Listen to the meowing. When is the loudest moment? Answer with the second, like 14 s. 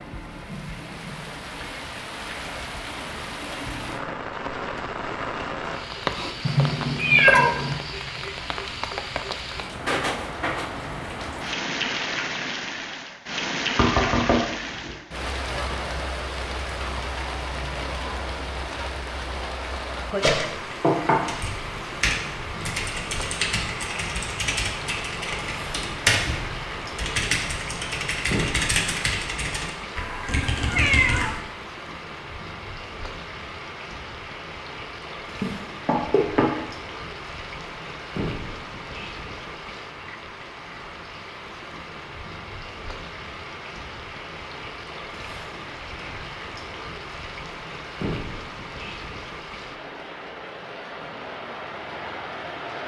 7 s.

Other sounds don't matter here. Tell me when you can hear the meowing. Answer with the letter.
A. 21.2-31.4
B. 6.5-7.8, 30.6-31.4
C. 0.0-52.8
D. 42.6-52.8
B.